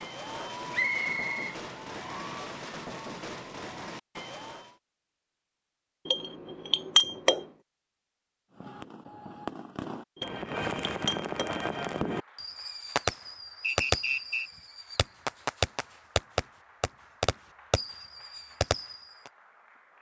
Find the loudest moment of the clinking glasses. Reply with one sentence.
The loudest moment of the clinking glasses is at 7 seconds.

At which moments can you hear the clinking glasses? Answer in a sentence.
The clinking glasses can be heard from 6.0 to 7.4 s and from 10.2 to 11.6 s.